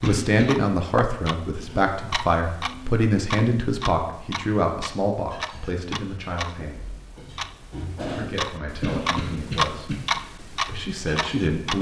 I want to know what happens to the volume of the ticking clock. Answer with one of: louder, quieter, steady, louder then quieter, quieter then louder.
louder.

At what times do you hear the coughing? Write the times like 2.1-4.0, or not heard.
0.0-0.6, 8.8-9.9.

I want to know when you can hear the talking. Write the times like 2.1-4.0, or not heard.
0.0-7.0, 8.0-11.7.